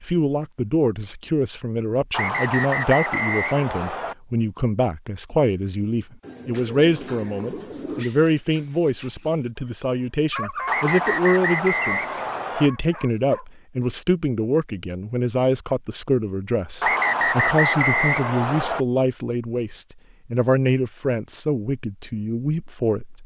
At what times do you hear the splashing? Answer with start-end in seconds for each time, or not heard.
not heard.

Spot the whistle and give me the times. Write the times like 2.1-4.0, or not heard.
2.1-4.2, 10.7-12.7, 16.8-18.9.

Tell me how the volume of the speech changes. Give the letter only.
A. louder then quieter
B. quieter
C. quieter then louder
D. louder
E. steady
E.